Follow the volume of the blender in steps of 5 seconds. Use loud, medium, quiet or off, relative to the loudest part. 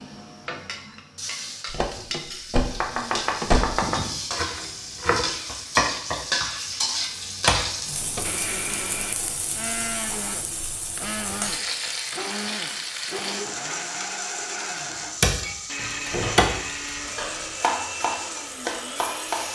off, loud, loud, loud.